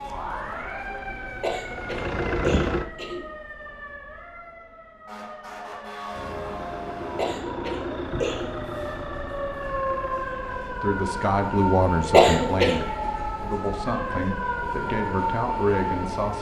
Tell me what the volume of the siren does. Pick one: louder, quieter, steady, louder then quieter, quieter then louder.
louder.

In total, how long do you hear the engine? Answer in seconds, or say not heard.
7 s.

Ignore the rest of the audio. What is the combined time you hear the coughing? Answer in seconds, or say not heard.
4 s.